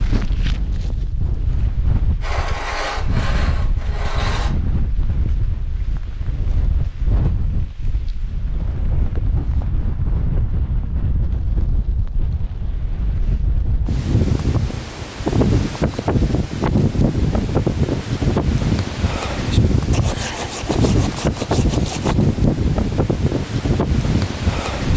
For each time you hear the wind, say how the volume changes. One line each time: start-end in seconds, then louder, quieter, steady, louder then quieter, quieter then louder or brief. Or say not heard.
0.0-24.9 louder.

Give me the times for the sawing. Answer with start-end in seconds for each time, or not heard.
2.2-4.5, 19.9-22.4.